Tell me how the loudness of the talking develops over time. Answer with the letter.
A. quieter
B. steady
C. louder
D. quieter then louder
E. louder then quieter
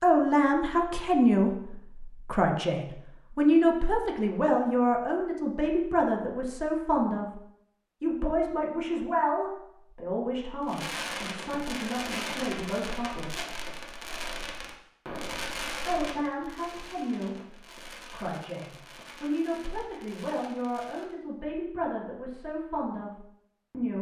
A.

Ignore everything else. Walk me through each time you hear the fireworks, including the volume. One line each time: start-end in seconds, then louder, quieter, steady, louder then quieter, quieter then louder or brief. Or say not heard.
10.7-21.1 quieter.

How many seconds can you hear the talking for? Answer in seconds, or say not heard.
21 s.